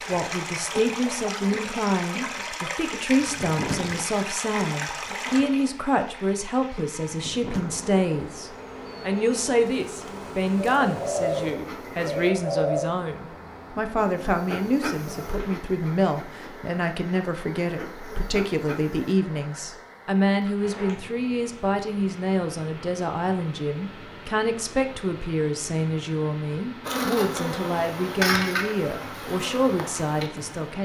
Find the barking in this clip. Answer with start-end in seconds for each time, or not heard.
not heard.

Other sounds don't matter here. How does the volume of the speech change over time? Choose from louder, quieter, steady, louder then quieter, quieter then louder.
steady.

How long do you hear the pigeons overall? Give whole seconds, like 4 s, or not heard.
2 s.